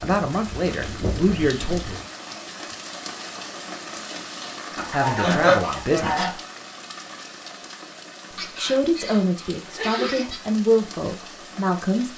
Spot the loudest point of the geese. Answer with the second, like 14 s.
5 s.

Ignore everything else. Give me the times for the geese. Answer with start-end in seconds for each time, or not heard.
0.0-2.0, 4.8-6.3, 8.3-10.4.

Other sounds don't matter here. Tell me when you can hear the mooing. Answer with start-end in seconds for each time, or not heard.
not heard.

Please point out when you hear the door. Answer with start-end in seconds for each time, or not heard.
not heard.